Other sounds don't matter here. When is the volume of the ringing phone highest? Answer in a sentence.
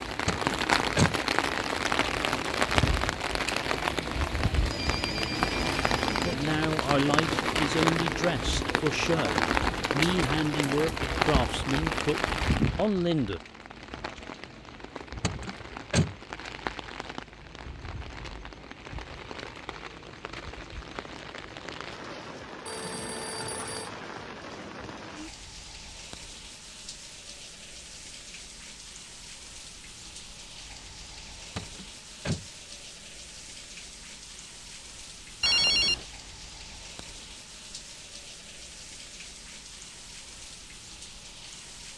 The loudest moment of the ringing phone is at 36 seconds.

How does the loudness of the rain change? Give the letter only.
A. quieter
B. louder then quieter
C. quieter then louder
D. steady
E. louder
A.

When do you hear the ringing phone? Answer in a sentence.
You can hear the ringing phone from 4.7 to 6.3 s, from 22.6 to 23.9 s and from 35.4 to 36.0 s.